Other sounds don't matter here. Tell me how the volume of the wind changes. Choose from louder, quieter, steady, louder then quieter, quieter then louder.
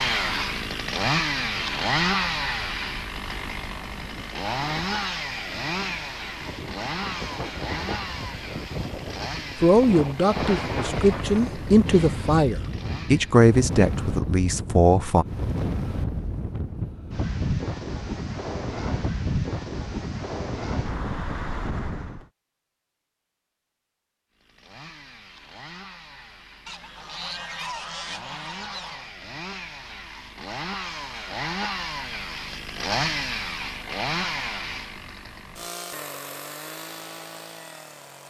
louder.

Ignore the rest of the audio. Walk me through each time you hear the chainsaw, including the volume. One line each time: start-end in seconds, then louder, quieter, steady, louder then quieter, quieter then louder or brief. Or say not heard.
0.0-13.5 quieter
24.4-38.2 louder then quieter.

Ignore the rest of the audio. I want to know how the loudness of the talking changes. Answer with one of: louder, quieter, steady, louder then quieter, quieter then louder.
louder then quieter.